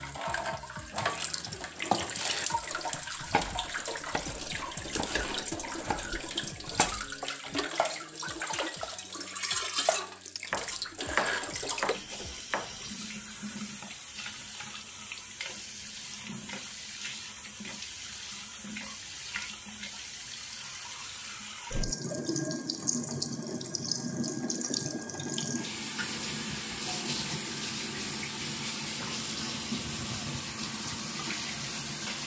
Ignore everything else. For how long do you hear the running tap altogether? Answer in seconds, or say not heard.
32 s.